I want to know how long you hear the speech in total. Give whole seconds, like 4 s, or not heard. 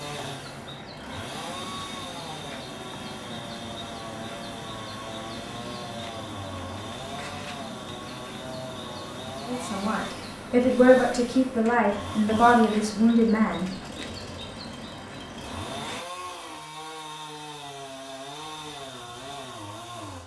4 s.